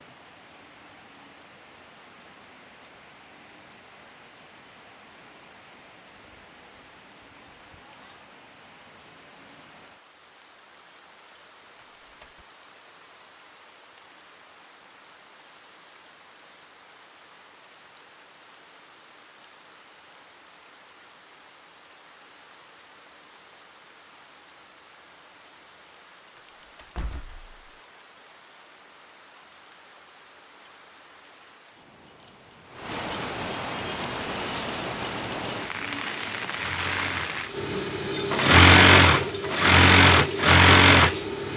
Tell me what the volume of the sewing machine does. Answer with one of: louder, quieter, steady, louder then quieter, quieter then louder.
louder.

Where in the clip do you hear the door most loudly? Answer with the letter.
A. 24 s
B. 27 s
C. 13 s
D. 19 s
B.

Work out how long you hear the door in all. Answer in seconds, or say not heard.
2 s.